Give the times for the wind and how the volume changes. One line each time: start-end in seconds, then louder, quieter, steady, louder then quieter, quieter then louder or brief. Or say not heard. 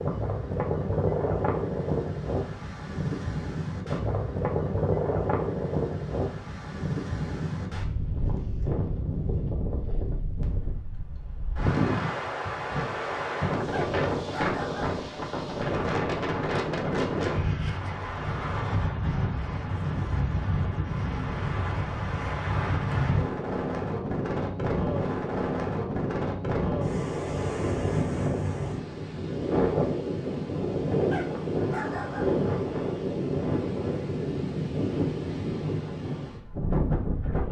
0.0-37.4 steady.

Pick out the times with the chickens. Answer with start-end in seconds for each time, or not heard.
not heard.